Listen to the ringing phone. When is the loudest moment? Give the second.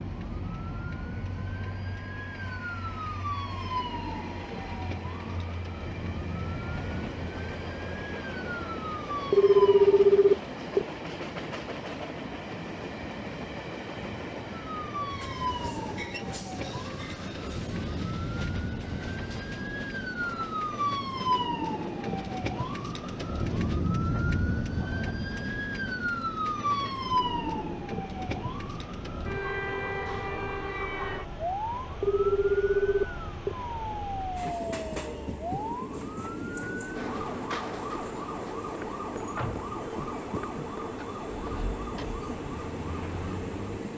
10 s.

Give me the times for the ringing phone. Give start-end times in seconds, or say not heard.
9.3-10.8, 32.0-33.5.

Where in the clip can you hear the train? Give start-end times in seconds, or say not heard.
0.0-43.9.